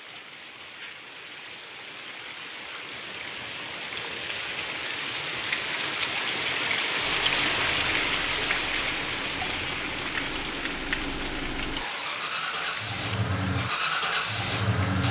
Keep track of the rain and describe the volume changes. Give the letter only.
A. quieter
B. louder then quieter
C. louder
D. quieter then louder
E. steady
B.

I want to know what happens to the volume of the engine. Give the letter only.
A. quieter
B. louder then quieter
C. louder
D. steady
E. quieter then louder
C.